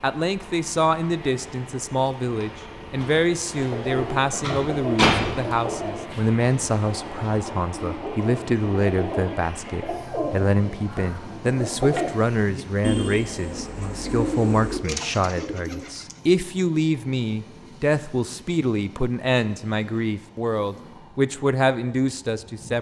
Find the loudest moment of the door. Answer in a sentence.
The volume of the door peaks at 5 seconds.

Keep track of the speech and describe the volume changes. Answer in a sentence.
The loudness of the speech stays about the same.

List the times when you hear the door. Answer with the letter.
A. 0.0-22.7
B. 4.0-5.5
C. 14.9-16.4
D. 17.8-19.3
B.